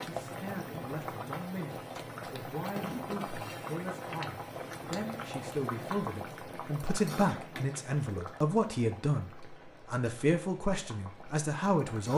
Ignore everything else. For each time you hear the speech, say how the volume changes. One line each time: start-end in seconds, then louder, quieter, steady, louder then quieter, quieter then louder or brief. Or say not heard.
0.0-12.1 louder.